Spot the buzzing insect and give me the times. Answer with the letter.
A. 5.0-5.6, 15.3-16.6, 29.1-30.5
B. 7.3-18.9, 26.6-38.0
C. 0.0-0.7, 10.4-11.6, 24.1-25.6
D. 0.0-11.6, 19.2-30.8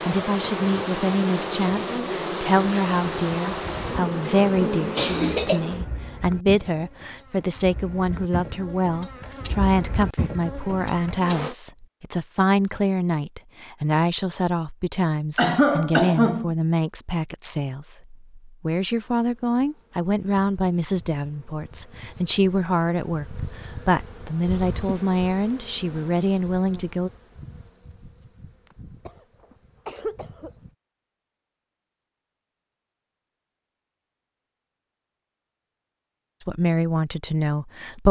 D.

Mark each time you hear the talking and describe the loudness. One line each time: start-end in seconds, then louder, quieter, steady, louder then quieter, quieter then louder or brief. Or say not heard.
0.0-27.1 steady
36.5-38.0 brief.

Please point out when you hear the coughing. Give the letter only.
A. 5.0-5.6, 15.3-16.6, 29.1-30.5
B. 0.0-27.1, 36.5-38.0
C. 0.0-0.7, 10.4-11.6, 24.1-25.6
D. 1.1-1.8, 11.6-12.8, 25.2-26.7
A.